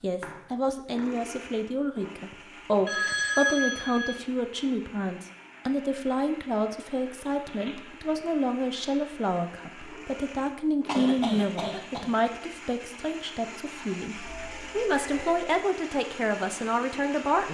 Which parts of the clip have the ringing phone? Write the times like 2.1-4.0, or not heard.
2.9-4.2, 7.3-7.8, 14.2-15.5.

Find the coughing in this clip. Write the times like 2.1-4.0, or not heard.
10.8-12.1.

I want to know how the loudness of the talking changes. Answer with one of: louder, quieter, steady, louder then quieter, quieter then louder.
steady.